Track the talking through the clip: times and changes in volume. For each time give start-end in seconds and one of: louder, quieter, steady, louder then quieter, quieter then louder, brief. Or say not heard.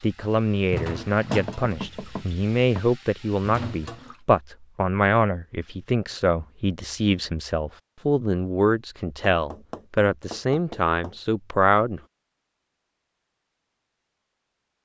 0.0-12.0 steady.